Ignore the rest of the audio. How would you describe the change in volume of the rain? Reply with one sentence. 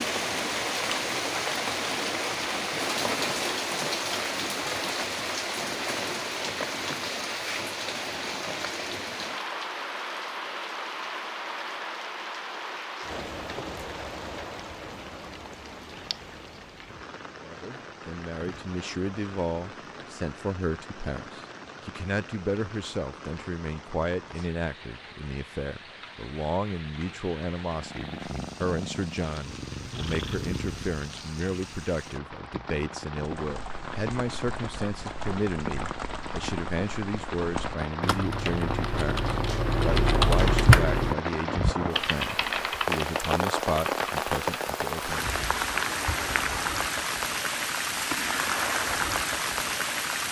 The loudness of the rain goes down, then up.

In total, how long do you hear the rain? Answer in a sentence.
The rain can be heard for 50 seconds in total.